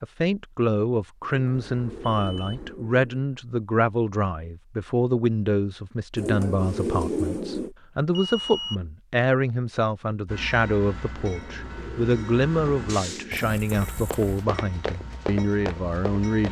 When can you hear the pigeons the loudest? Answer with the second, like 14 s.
7 s.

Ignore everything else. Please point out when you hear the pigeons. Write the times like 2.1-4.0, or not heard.
1.2-3.2, 6.2-7.7, 11.2-13.5.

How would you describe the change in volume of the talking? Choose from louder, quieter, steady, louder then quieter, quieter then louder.
steady.